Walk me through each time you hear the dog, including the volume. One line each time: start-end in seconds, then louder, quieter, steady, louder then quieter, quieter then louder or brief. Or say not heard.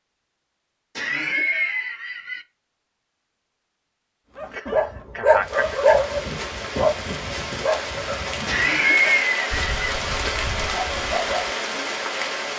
4.3-11.9 quieter then louder.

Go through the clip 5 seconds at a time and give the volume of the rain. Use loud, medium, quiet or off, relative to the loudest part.
off, loud, loud.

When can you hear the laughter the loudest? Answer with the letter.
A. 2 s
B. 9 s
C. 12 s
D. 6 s
B.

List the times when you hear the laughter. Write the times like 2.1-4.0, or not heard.
0.9-2.5, 4.5-5.8, 8.4-9.7.